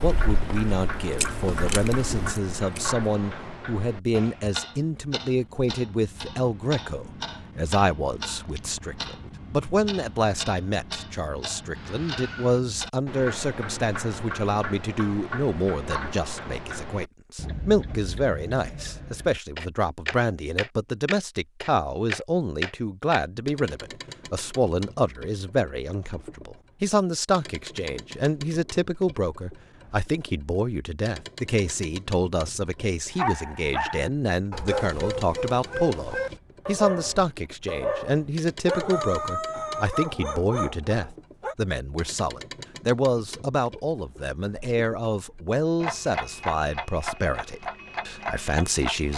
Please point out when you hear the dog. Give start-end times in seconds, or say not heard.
33.1-41.5.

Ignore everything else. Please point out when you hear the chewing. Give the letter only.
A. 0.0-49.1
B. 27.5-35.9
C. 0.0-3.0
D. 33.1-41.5
C.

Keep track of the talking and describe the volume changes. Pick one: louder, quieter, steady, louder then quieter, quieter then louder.
steady.